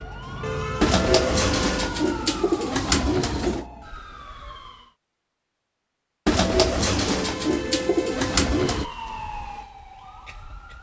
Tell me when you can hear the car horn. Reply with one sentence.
The car horn can be heard from 0.4 to 1.7 s and from 7.0 to 8.9 s.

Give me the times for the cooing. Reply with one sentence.
The cooing can be heard from 0.8 to 3.6 s and from 6.2 to 8.8 s.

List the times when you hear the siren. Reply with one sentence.
The siren can be heard from 0.0 to 5.0 s and from 8.7 to 10.7 s.